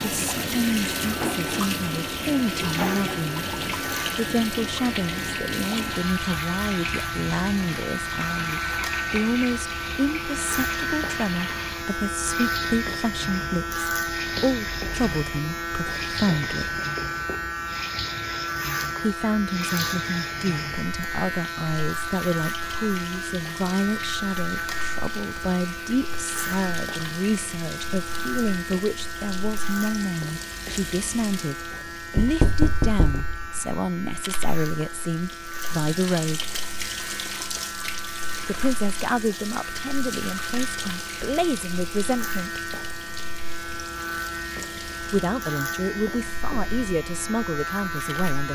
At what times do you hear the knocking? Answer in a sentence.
The knocking can be heard from 32.1 to 33.3 s.